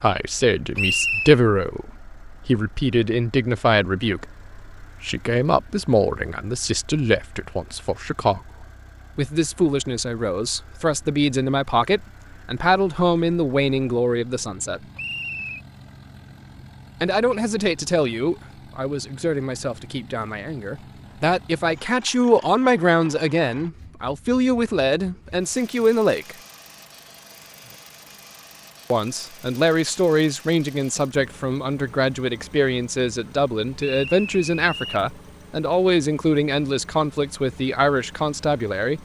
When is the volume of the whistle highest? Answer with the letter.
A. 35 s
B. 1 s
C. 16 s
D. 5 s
B.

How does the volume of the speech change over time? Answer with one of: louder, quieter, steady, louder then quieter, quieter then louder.
steady.